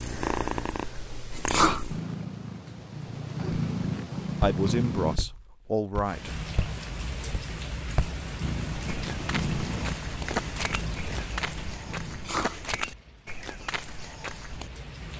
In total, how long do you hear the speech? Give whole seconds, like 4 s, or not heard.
2 s.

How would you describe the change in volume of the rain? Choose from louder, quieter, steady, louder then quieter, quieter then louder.
quieter.